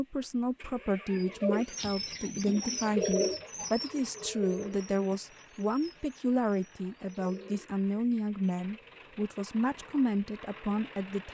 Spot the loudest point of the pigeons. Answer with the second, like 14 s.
3 s.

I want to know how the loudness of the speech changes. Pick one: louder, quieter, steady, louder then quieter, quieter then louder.
steady.